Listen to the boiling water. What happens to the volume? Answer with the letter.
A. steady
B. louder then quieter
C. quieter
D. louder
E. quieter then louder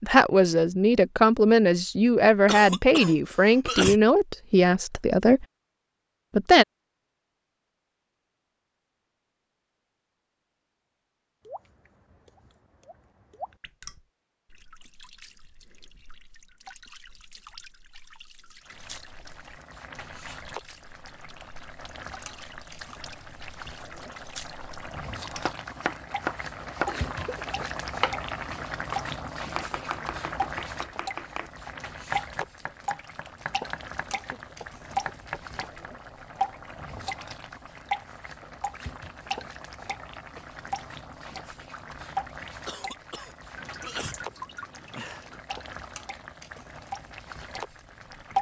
B.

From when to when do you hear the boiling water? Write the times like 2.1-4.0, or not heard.
18.6-48.3.